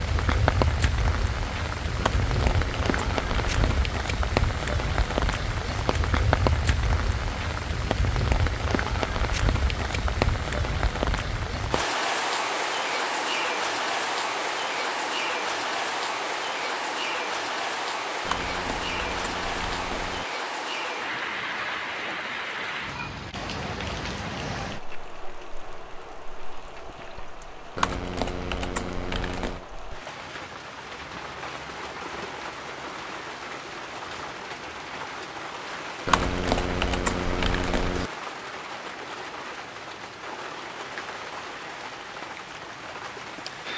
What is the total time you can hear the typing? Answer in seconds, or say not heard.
8 s.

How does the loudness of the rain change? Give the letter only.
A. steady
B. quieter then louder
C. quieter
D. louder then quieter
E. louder
C.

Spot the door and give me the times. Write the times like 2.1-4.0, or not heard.
not heard.